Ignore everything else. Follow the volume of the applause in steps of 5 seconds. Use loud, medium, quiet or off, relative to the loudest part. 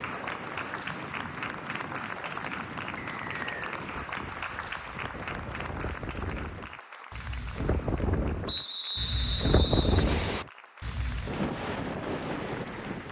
loud, medium, medium.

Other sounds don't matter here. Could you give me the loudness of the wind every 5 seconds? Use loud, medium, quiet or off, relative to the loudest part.
medium, loud, loud.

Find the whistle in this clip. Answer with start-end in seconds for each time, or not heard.
3.0-3.8, 8.4-10.4.